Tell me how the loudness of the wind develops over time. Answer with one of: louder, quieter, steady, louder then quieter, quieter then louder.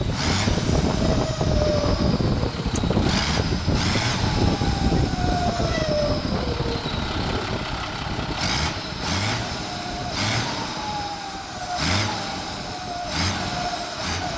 quieter.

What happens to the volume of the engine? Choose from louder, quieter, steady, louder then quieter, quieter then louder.
steady.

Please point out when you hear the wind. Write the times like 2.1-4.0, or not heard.
0.0-14.3.